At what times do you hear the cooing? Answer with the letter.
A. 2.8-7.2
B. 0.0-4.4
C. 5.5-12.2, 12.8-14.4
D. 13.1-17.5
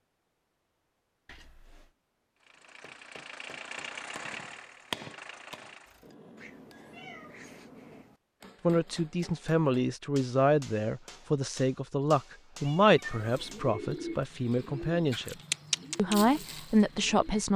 D.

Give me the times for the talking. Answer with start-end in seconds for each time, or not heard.
8.6-15.3, 15.9-17.5.